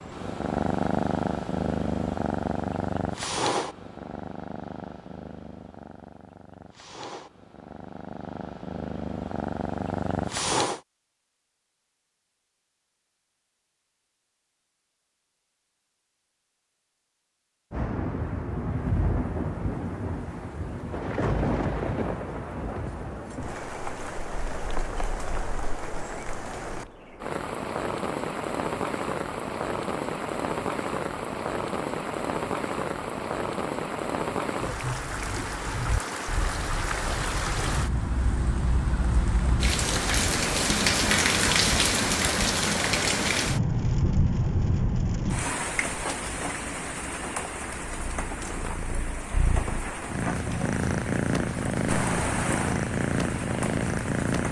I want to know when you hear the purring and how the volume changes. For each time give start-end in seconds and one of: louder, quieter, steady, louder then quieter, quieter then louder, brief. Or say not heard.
0.0-10.8 quieter then louder
47.8-54.4 louder.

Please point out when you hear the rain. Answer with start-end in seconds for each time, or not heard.
17.7-54.4.